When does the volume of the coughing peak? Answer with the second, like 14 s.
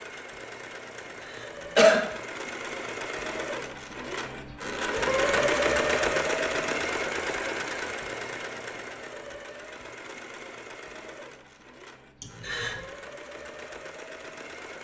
2 s.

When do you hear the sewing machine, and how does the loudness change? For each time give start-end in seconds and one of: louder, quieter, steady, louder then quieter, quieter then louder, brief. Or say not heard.
0.0-14.7 louder then quieter.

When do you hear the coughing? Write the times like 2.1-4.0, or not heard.
1.4-2.0, 12.2-12.8.